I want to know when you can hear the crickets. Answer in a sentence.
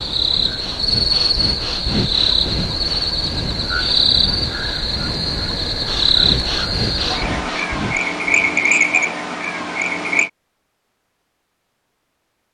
The crickets can be heard from 0.0 to 10.3 s.